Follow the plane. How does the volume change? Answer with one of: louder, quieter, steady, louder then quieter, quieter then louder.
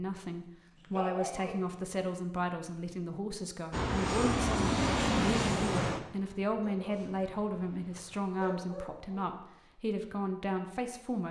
quieter.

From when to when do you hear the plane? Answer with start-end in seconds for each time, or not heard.
3.7-8.2.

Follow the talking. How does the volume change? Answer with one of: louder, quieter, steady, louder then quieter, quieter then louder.
steady.